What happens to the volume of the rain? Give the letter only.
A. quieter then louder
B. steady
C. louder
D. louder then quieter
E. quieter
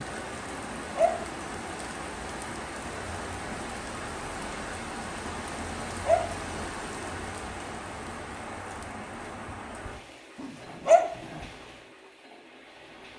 E.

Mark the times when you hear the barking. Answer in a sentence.
The barking can be heard from 0.5 to 1.6 s, from 5.5 to 6.7 s and from 10.4 to 11.4 s.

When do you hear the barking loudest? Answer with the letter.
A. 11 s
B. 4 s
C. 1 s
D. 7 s
A.